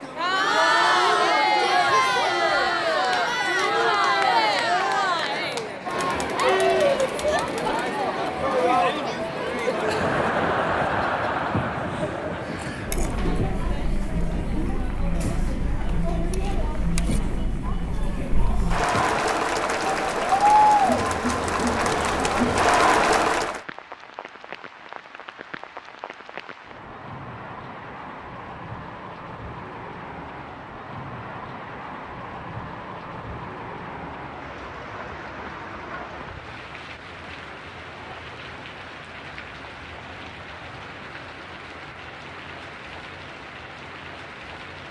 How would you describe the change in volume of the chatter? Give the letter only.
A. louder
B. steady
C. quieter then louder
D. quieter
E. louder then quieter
C.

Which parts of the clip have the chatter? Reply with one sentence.
The chatter can be heard from 0.0 to 23.6 s.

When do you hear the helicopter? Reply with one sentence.
You can't hear the helicopter here.